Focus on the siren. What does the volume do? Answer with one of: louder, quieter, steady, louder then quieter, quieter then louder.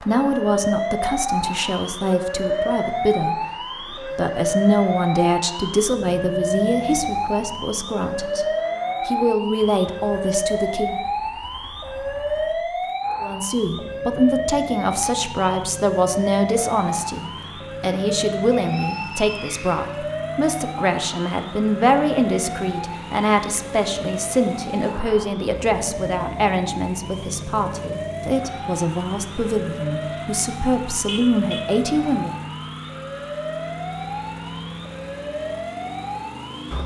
quieter.